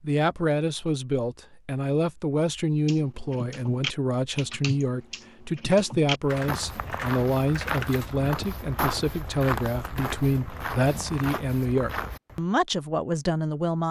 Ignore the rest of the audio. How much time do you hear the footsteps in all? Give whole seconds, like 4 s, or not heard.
6 s.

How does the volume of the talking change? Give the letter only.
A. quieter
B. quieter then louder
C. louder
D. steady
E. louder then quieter
D.